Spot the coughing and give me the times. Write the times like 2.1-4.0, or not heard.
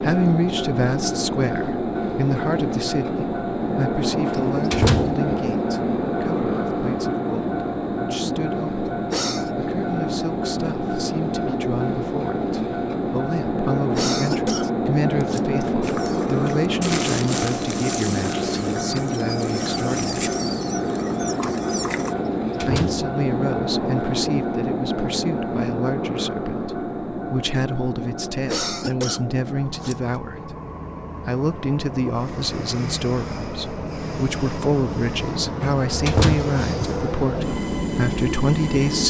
8.8-9.5, 13.9-15.4, 28.4-30.2.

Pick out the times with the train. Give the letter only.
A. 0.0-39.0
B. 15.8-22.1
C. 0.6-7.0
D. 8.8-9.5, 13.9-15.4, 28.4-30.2
A.